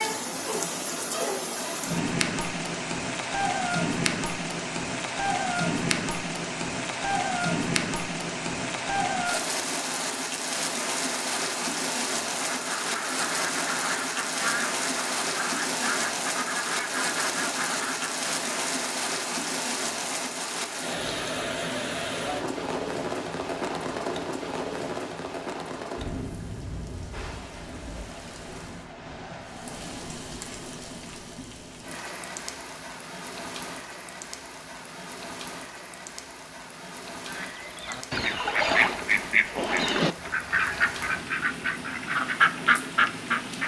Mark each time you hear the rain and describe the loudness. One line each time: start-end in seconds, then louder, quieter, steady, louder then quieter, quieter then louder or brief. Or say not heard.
0.0-43.6 quieter.